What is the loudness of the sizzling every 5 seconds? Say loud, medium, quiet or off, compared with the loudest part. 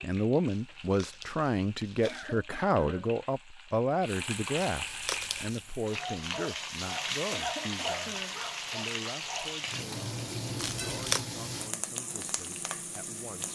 medium, loud, loud.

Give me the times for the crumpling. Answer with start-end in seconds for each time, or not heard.
0.5-2.4, 4.7-5.7, 10.6-11.2.